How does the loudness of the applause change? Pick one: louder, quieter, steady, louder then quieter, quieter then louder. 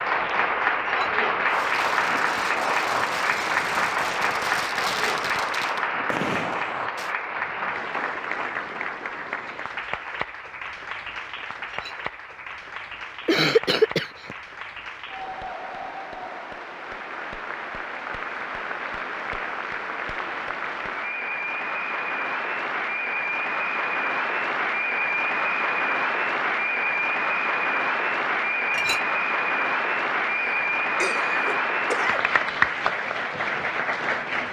quieter then louder.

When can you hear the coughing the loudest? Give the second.
14 s.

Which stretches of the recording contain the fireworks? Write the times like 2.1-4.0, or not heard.
1.4-7.1.